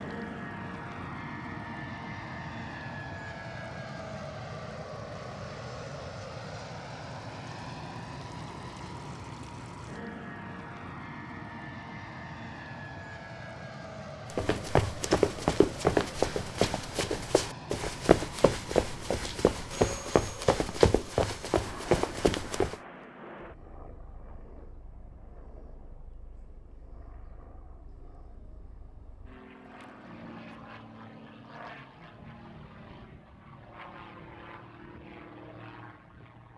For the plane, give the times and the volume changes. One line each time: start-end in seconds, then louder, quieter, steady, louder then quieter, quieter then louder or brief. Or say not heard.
0.0-36.5 quieter.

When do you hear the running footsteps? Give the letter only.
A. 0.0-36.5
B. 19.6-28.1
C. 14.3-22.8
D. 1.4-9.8
C.